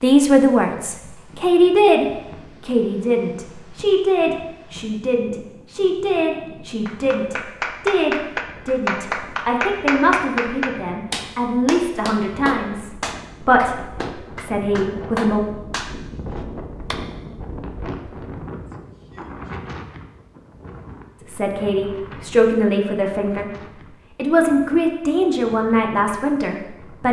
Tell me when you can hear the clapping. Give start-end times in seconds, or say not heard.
6.8-17.0.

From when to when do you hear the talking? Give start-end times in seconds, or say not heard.
0.0-15.4, 21.2-23.5, 24.1-27.0.